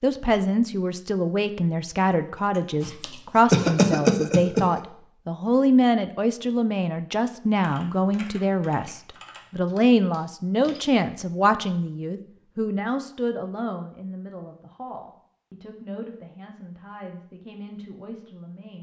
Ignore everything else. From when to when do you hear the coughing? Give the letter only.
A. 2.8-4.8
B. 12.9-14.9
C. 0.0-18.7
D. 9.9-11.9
A.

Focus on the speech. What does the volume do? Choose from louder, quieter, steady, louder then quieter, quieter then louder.
quieter.